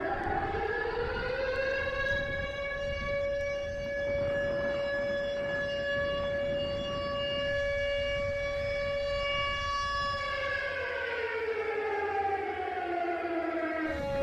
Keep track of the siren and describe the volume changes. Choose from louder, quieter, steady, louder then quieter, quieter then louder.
steady.